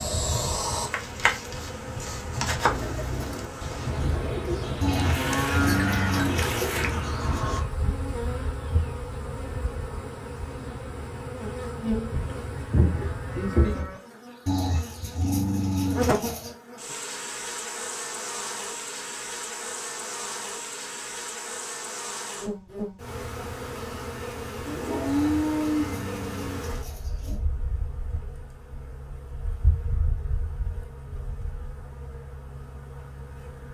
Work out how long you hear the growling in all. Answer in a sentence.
You can hear the growling for 6 seconds altogether.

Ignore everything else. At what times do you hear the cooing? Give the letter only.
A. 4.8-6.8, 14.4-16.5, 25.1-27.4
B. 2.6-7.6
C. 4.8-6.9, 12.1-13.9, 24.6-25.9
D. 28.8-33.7
B.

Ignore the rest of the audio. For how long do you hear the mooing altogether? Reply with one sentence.
The mooing can be heard for 5 seconds in total.